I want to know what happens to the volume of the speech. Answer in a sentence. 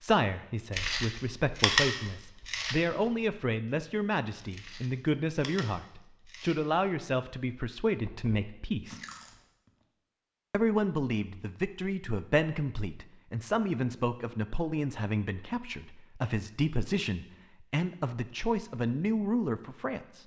The volume of the speech stays about the same.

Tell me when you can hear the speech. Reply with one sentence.
You can hear the speech from 0.0 to 9.0 s and from 10.5 to 20.2 s.